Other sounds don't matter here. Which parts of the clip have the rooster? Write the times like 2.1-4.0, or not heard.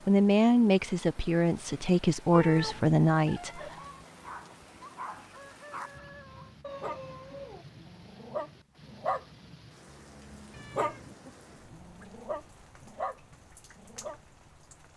3.2-6.5.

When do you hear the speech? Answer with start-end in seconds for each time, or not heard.
0.1-3.8.